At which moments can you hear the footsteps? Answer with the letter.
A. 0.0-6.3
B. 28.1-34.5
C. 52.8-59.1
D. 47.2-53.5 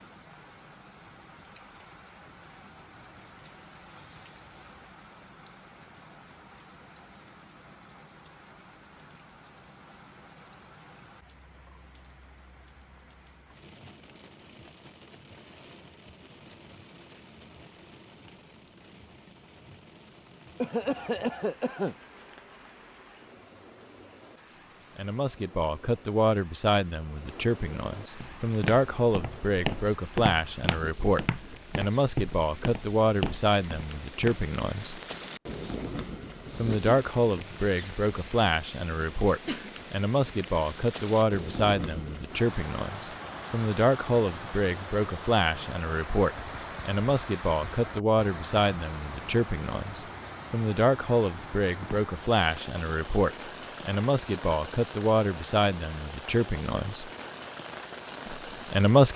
B.